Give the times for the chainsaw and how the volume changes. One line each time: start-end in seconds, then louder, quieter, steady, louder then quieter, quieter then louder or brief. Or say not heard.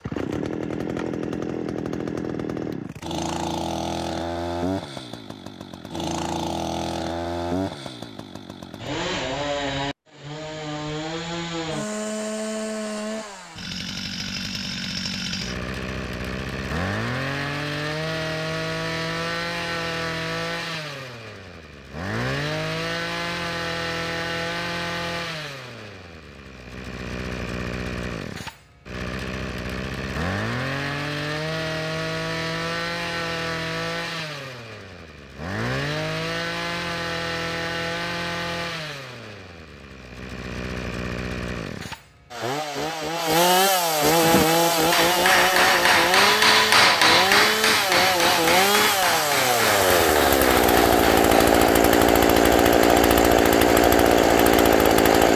0.0-55.3 louder.